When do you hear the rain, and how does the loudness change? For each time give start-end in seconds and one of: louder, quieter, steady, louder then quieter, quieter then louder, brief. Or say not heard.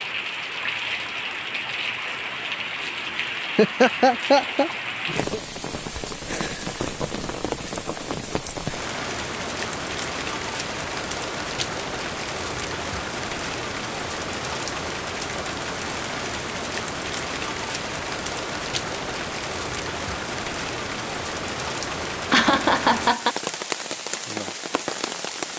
0.0-25.5 steady.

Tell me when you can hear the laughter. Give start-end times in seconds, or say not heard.
3.5-5.4, 22.3-23.4.